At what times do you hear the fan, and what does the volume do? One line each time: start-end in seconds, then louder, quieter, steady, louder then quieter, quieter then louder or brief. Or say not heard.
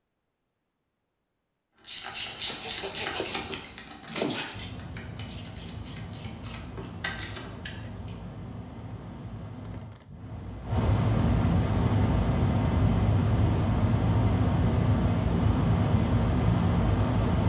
4.5-17.4 louder.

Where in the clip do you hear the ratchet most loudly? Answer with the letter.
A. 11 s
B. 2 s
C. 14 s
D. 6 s
B.